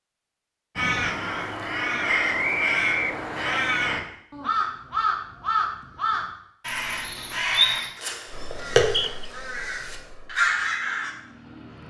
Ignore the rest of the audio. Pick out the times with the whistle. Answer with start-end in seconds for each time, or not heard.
2.0-3.6, 8.8-9.2.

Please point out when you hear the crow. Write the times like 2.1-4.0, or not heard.
0.8-11.1.